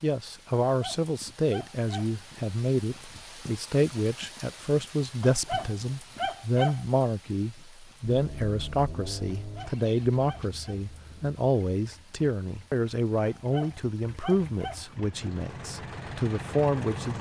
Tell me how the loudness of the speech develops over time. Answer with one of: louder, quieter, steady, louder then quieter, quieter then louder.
steady.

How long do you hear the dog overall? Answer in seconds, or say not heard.
6 s.